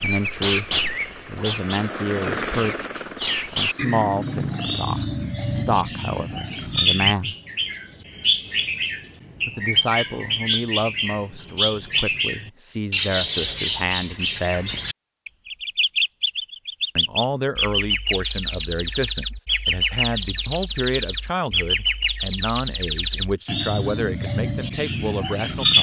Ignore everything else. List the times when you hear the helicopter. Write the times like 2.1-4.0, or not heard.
0.0-4.8.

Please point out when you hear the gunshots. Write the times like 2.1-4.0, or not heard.
not heard.